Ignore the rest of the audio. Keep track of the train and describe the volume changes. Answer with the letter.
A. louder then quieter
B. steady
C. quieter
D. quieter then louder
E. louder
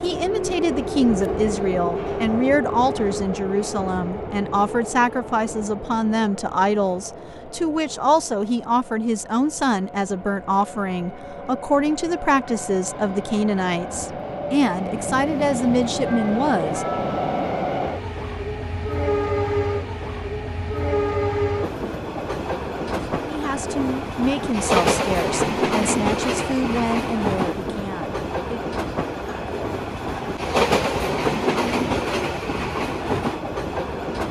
D.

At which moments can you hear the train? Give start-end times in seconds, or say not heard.
0.0-34.2.